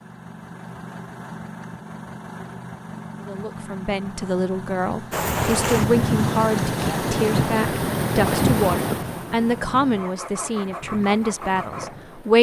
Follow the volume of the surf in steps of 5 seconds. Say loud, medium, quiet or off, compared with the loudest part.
off, loud, quiet.